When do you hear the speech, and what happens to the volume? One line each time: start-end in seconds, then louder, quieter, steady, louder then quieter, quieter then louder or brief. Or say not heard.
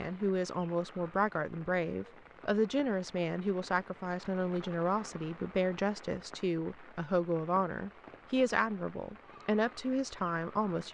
0.0-10.9 steady.